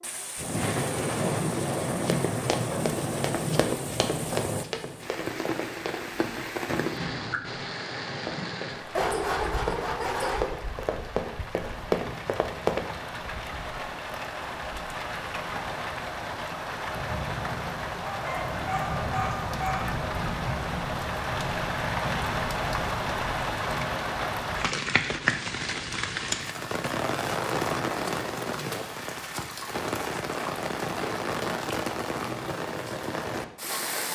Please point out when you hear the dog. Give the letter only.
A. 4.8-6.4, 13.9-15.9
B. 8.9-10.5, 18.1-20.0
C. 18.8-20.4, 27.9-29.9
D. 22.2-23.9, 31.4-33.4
B.